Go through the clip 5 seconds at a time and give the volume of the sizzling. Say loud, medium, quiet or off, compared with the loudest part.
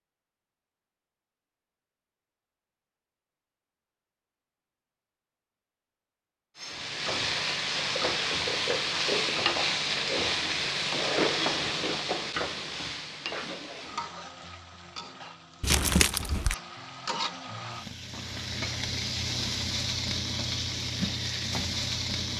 off, loud, loud, medium, loud.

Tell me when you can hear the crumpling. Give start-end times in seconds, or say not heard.
15.6-16.6.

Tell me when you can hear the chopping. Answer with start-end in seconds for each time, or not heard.
not heard.